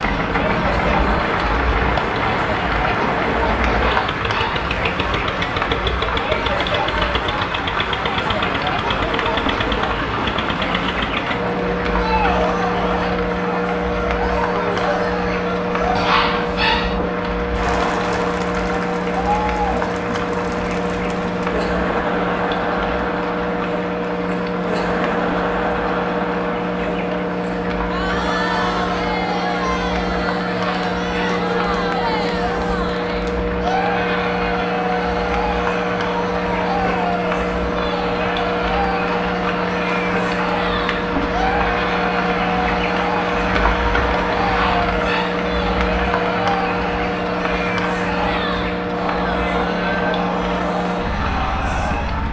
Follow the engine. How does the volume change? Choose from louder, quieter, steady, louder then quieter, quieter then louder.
steady.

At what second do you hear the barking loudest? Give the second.
16 s.